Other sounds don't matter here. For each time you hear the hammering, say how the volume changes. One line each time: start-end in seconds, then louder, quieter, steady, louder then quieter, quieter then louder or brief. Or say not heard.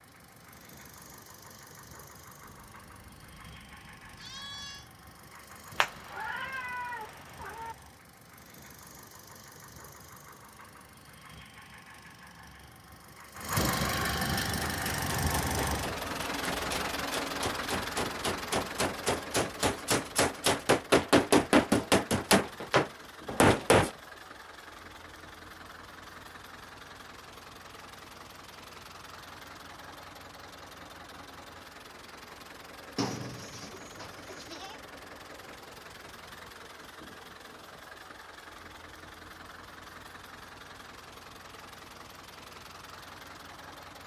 14.4-23.9 louder.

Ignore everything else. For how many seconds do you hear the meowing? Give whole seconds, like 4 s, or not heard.
2 s.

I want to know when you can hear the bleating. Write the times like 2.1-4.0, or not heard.
2.4-4.9, 33.0-34.8.